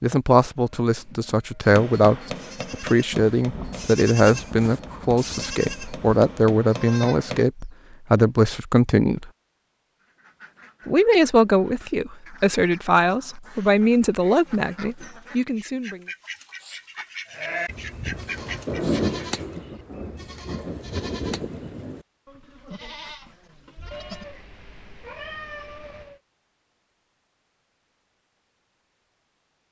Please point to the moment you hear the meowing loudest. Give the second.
25 s.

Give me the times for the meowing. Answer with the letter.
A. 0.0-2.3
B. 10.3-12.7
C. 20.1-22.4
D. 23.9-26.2
D.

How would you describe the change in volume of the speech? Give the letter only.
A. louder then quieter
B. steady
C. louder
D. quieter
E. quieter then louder
B.